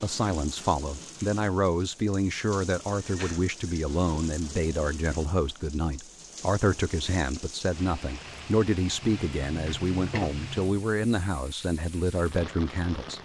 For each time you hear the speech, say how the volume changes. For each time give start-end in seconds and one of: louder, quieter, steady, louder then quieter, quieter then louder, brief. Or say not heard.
0.0-13.1 steady.